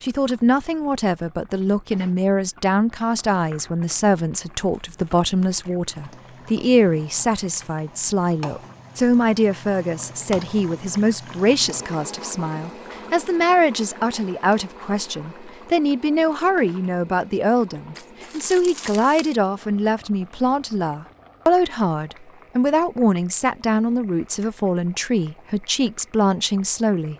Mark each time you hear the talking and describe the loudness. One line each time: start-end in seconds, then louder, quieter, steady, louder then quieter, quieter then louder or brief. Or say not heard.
0.0-27.1 steady.